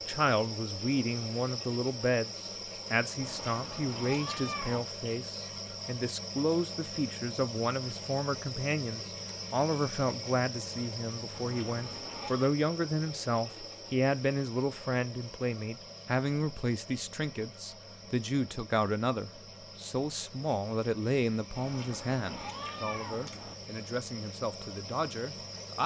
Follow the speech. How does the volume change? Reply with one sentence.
The volume of the speech stays about the same.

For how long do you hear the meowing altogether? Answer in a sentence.
The meowing can be heard for 5 seconds in total.